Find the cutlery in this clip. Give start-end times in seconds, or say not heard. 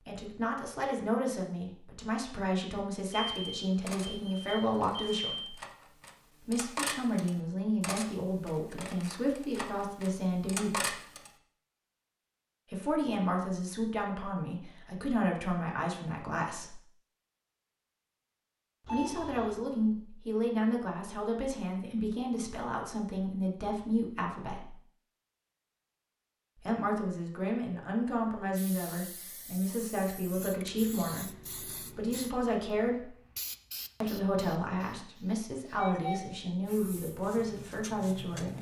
3.4-11.3.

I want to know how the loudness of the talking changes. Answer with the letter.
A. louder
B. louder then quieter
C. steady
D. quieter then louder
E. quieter
C.